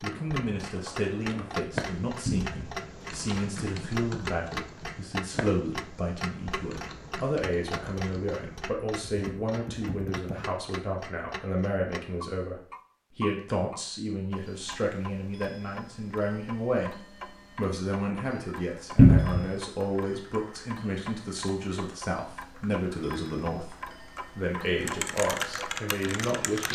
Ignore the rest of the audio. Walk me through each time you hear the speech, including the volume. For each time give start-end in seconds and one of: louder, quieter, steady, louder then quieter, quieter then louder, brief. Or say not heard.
0.0-26.7 steady.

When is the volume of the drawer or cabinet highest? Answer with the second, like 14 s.
19 s.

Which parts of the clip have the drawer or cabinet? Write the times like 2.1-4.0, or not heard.
2.2-2.7, 18.9-19.4.